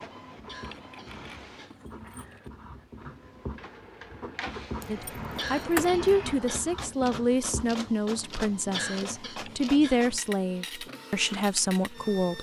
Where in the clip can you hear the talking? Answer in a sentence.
You can hear the talking from 4.8 to 12.3 s.